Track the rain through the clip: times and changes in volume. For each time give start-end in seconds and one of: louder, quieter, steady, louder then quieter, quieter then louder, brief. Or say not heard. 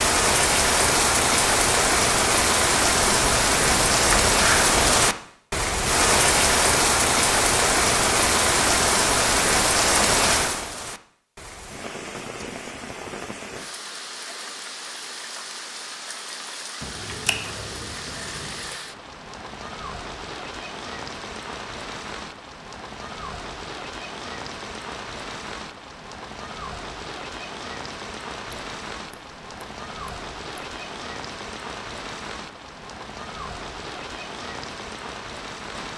0.0-35.9 quieter.